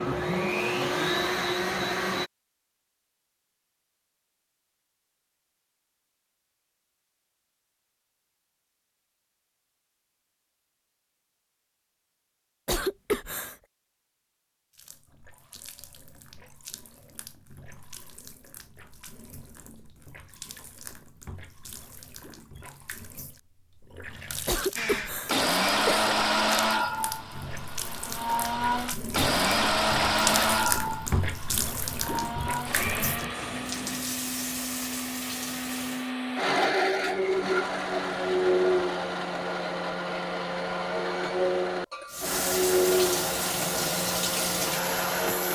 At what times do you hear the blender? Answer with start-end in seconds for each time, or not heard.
0.0-2.3, 24.8-45.5.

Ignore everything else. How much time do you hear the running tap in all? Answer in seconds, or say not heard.
25 s.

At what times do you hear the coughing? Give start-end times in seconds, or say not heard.
12.7-13.6, 24.4-26.1.